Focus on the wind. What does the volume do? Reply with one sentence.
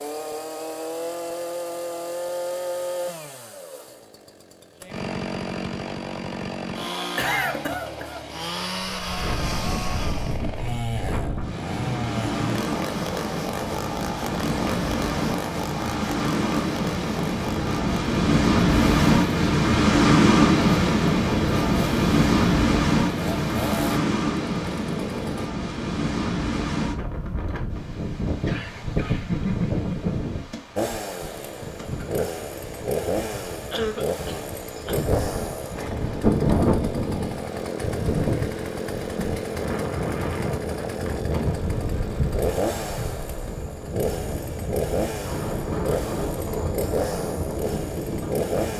The loudness of the wind goes up, then down.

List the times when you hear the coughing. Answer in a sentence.
You can hear the coughing from 7.2 to 8.2 s, from 28.4 to 30.2 s and from 33.7 to 35.0 s.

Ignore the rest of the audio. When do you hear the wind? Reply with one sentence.
You can hear the wind from 8.8 to 48.7 s.